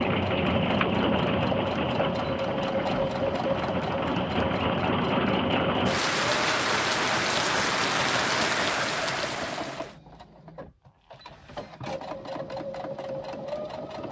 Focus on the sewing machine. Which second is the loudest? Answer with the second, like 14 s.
3 s.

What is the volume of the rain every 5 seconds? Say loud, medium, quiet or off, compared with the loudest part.
loud, loud, off.